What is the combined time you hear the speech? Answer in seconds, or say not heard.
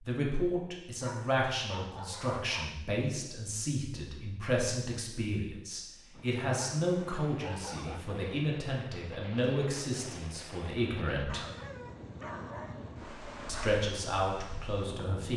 13 s.